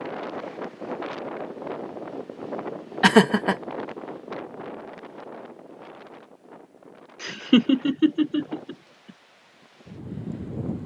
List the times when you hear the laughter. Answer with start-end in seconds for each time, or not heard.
3.0-3.5, 7.2-8.8.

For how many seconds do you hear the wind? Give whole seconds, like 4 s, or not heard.
11 s.